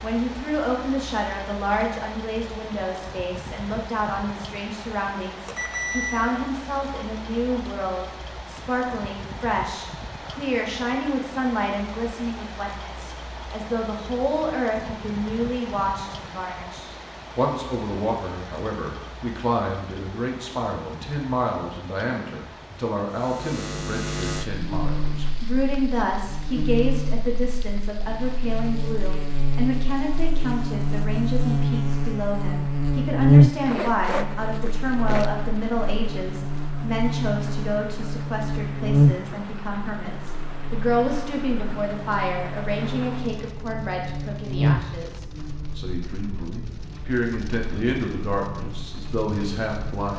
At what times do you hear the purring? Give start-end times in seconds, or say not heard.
not heard.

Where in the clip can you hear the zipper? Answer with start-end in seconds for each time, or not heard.
33.6-35.3.